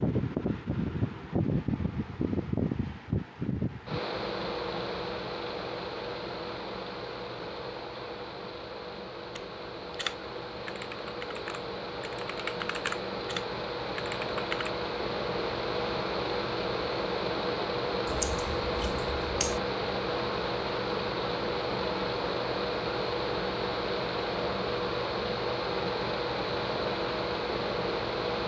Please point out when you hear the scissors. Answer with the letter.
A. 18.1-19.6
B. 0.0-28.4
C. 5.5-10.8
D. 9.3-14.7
A.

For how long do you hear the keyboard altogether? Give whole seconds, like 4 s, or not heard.
5 s.